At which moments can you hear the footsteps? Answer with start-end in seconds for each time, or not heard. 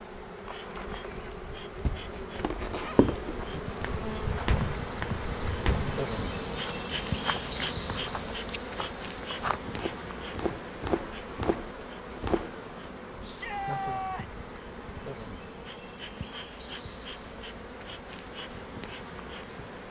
1.9-12.6.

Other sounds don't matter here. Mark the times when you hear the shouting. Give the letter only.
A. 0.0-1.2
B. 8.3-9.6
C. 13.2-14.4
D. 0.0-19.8
C.